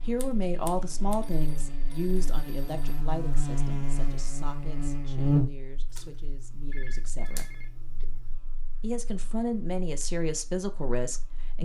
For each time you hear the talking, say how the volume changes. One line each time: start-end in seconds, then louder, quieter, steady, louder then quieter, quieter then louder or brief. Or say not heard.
0.1-7.5 quieter
8.8-11.6 brief.